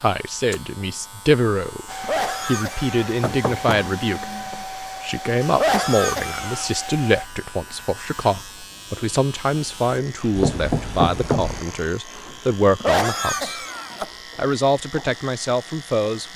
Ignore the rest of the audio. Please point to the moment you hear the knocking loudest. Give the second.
11 s.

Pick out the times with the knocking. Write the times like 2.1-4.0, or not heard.
3.2-4.7, 10.3-11.7.